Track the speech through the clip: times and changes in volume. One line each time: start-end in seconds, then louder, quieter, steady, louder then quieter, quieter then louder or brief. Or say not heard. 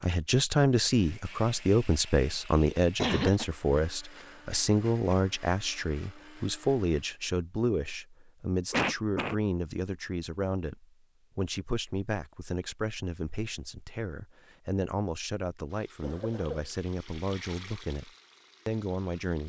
0.0-19.4 quieter.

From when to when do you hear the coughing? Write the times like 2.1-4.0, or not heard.
2.8-3.5, 8.7-9.3, 16.0-16.7.